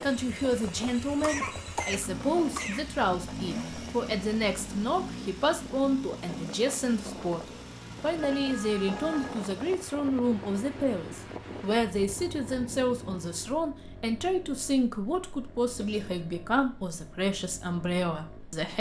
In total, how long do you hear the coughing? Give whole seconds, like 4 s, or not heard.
2 s.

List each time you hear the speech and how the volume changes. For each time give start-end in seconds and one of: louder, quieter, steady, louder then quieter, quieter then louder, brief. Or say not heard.
0.0-18.7 steady.